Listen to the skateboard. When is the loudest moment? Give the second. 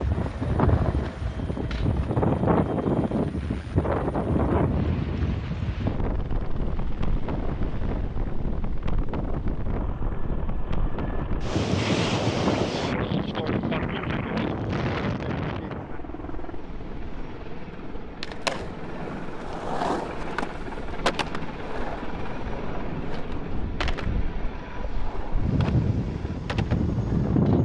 20 s.